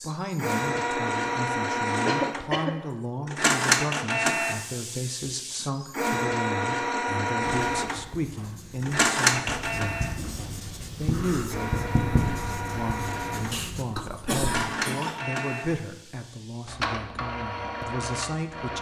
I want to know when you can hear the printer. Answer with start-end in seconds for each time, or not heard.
0.0-18.7.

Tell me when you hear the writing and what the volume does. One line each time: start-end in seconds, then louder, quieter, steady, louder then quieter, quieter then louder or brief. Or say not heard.
7.4-14.4 louder then quieter.